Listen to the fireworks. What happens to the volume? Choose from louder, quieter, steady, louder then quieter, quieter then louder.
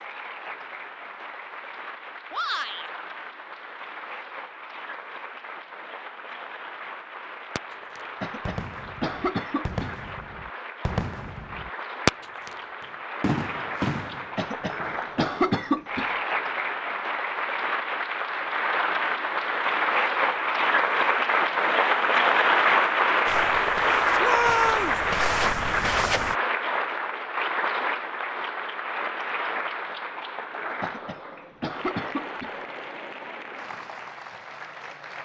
louder then quieter.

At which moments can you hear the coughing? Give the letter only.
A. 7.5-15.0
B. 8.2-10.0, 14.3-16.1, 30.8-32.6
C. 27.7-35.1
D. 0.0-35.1
B.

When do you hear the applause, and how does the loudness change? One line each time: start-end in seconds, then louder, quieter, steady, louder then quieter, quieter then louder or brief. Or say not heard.
0.0-35.1 louder then quieter.